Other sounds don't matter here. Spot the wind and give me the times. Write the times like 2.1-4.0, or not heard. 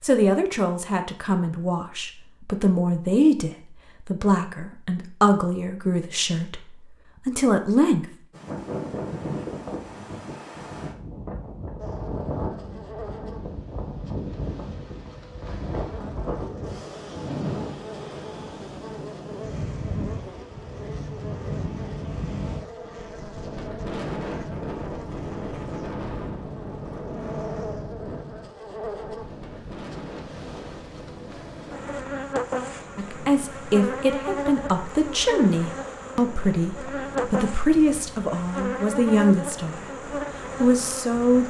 8.3-41.4.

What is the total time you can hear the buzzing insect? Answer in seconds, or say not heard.
30 s.